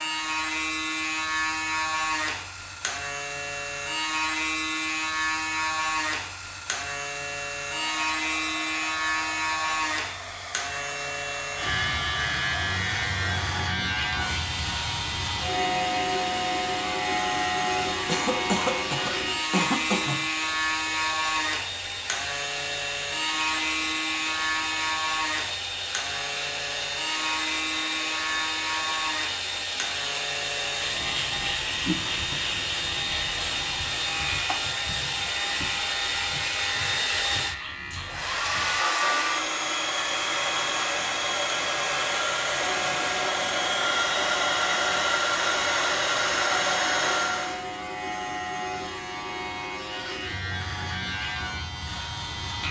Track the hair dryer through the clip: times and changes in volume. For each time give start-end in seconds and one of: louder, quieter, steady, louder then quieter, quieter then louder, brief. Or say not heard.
0.0-47.6 louder.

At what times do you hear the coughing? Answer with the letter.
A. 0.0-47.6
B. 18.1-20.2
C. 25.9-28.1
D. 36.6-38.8
B.